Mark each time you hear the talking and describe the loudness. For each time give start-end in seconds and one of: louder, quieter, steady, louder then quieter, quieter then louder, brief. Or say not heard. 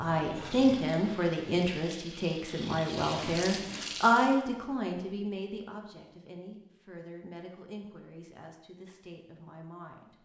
0.0-10.1 quieter.